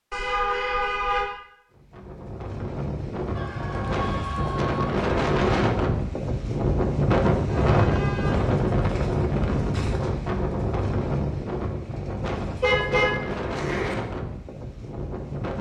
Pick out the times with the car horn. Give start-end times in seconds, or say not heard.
0.1-1.2, 7.7-8.4, 12.6-13.9.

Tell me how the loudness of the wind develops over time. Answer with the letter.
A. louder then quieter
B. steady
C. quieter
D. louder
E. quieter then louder
A.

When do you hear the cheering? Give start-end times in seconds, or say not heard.
3.4-5.0.